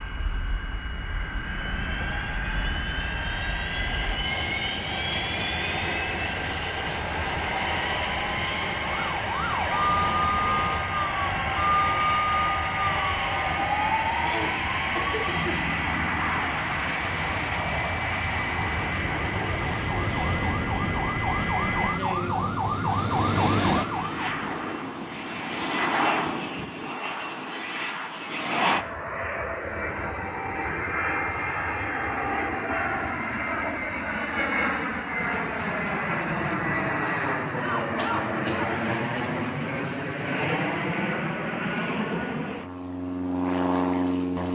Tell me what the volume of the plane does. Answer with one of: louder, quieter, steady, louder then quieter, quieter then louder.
steady.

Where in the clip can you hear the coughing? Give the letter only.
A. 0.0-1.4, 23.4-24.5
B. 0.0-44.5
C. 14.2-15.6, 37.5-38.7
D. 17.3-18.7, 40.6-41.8
C.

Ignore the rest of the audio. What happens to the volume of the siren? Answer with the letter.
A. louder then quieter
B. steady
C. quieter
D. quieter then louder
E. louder
D.